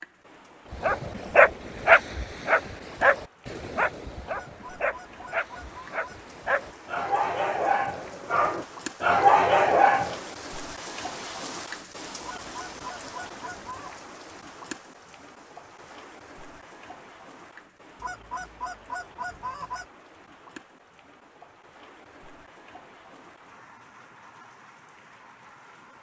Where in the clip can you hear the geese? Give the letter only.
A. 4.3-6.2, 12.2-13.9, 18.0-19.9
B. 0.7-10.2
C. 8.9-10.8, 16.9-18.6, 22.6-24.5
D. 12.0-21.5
A.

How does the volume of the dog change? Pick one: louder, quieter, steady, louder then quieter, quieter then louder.
quieter then louder.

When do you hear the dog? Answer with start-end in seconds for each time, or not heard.
0.7-10.2.